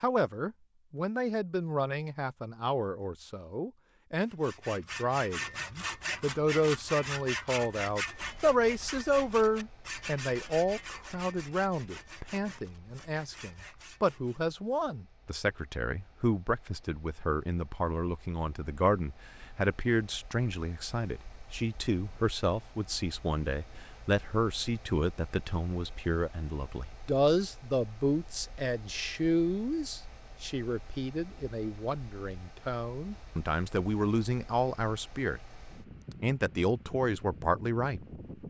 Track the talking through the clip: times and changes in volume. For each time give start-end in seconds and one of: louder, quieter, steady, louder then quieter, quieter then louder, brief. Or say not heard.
0.0-35.4 steady
36.2-38.0 brief.